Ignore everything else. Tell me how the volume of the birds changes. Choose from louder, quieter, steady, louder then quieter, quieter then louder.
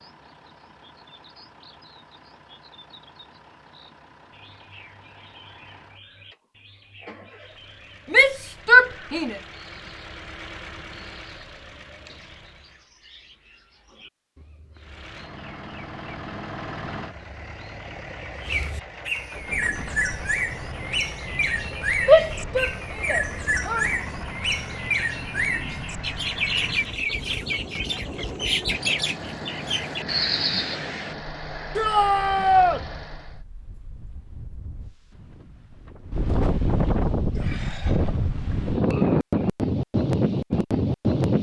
louder.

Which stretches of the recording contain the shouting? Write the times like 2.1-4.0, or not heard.
8.1-9.3, 22.1-23.9, 31.8-32.8.